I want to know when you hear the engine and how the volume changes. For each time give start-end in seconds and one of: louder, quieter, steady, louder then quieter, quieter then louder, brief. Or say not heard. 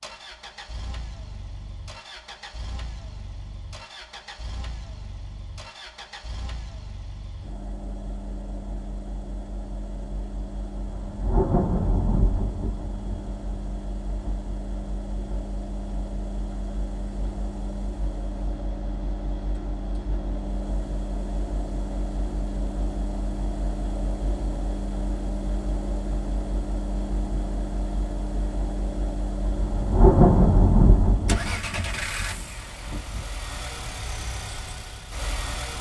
0.0-35.7 louder.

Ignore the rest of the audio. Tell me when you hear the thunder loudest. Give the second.
30 s.